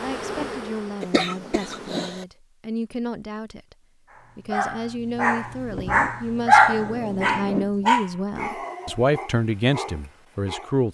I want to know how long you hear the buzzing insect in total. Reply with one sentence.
You can hear the buzzing insect for 2 seconds altogether.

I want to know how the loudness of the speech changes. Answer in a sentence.
The loudness of the speech goes up.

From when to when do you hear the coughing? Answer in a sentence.
You can hear the coughing from 1.0 to 2.2 s.